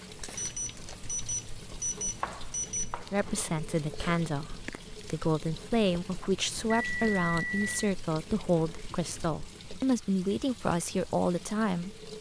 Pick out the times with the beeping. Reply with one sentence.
The beeping can be heard from 0.3 to 3.0 s and from 6.5 to 8.0 s.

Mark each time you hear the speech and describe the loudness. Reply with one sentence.
You can hear the speech from 3.1 to 12.0 s, at a steady volume.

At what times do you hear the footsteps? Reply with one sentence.
The footsteps can't be heard in this clip.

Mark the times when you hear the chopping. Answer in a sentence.
You can hear the chopping from 2.0 to 3.5 s.